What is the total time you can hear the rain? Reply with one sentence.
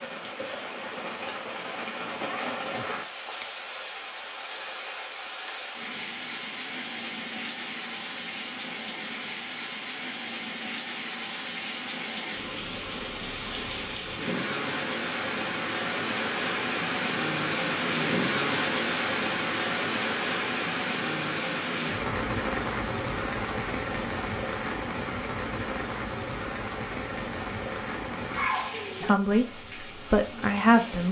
The rain can be heard for 31 seconds in total.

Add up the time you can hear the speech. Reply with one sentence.
The speech can be heard for 2 seconds in total.